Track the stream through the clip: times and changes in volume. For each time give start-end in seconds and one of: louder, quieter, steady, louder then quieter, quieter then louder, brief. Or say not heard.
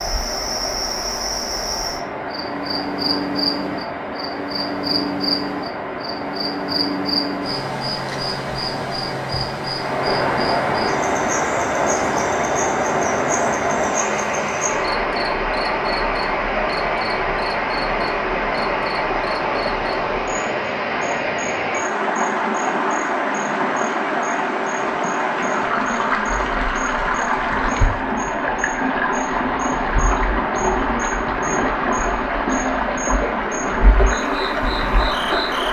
0.0-35.6 louder.